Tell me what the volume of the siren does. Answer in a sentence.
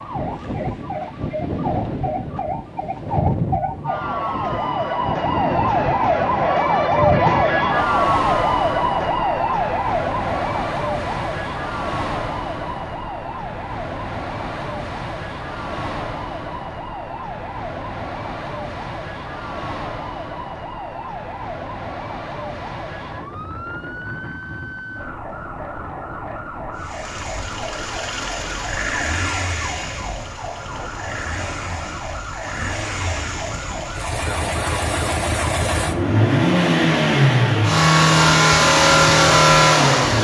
The volume of the siren goes down.